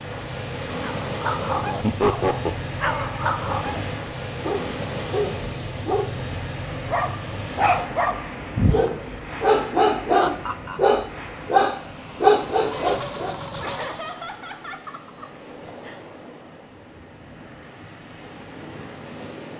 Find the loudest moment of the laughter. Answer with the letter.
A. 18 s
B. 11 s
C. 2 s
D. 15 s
C.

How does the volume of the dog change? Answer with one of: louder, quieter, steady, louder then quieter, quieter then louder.
louder.